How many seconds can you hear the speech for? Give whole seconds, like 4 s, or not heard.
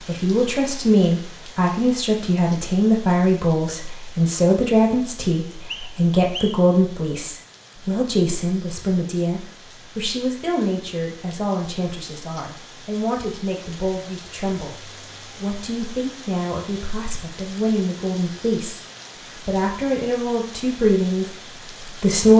22 s.